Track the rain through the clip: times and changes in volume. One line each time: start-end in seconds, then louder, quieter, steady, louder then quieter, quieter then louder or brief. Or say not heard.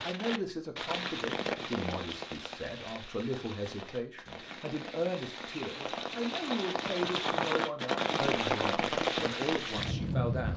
0.0-10.5 quieter then louder.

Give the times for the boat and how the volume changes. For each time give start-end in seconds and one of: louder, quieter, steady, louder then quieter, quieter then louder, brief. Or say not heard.
not heard.